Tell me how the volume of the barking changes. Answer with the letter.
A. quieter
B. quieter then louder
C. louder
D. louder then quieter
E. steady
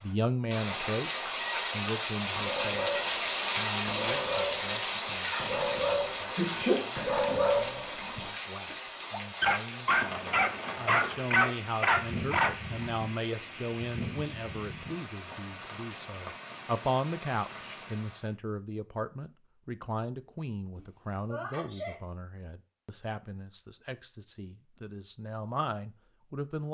C.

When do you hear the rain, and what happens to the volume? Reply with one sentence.
The rain can be heard from 0.0 to 18.4 s, getting quieter.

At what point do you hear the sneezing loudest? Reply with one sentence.
The loudest moment of the sneezing is at 7 seconds.